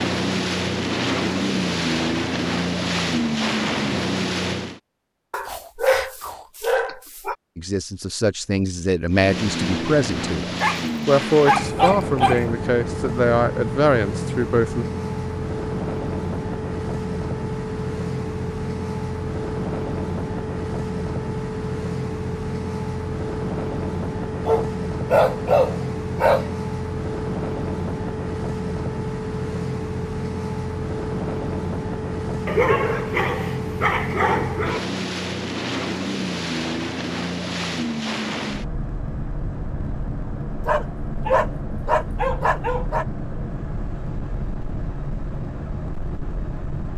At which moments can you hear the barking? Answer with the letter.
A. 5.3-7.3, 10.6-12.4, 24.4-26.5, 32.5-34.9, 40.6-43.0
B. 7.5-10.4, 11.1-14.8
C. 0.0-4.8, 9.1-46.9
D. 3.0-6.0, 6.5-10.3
A.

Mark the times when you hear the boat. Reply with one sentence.
You can hear the boat from 0.0 to 4.8 s and from 9.1 to 46.9 s.